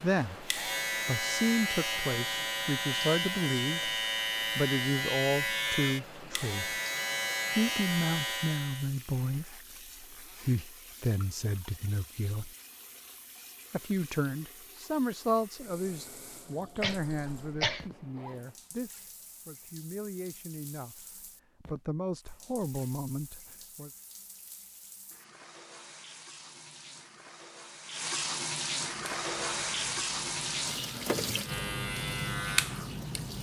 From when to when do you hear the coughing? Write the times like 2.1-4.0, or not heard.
16.8-17.9.